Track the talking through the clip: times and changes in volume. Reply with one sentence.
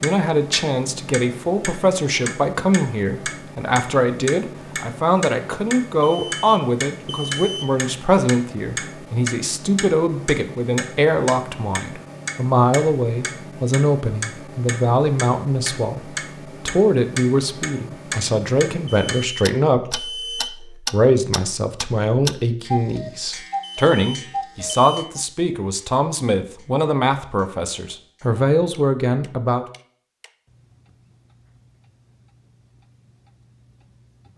You can hear the talking from 0.0 to 29.6 s, at a steady volume.